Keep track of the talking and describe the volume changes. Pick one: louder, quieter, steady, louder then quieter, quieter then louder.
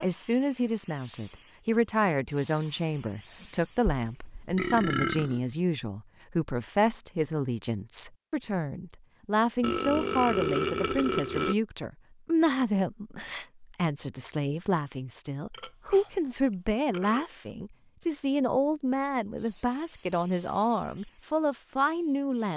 steady.